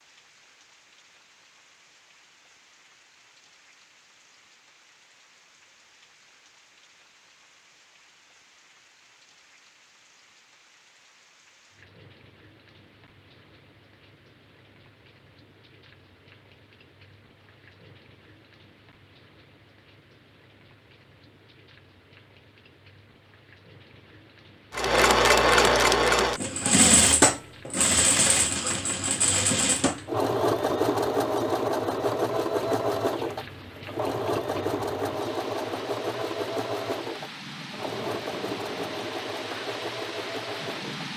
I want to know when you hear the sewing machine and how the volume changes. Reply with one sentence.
You can hear the sewing machine from 24.8 to 41.1 s, getting quieter.